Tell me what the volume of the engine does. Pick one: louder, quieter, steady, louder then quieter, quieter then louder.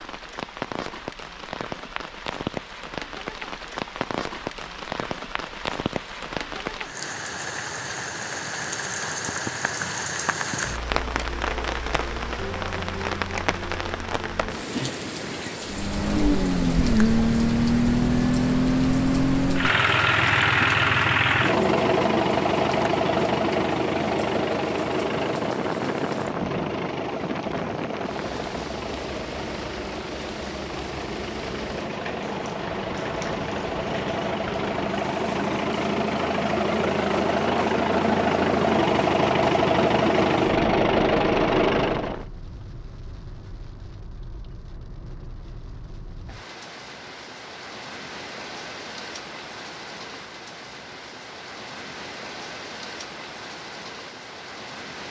quieter then louder.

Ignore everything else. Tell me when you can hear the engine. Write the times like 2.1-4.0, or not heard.
15.7-42.2.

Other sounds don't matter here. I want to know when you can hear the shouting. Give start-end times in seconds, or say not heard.
not heard.